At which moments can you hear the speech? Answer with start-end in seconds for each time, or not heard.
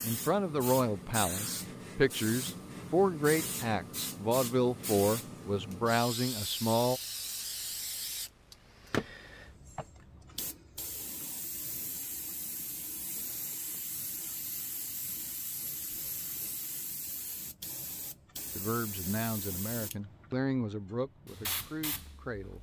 0.0-7.0, 18.6-22.5.